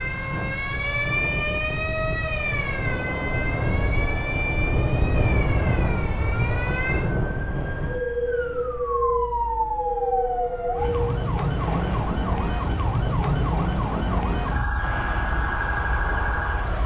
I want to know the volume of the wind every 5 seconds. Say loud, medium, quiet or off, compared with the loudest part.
loud, loud, loud, medium.